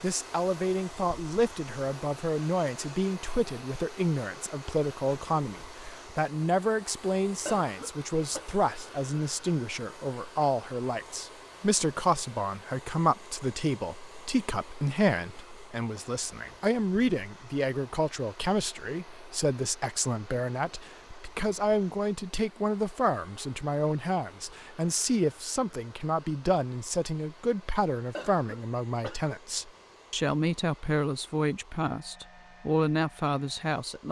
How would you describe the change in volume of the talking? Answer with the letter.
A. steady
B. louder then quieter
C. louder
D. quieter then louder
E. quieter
A.